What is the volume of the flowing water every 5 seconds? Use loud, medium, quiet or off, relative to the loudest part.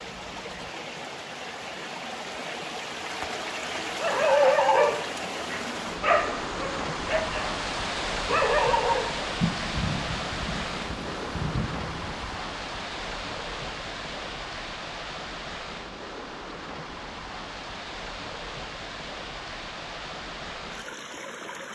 loud, loud, loud, medium, medium.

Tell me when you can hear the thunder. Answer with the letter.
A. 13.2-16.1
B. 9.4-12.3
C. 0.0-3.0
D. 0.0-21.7
B.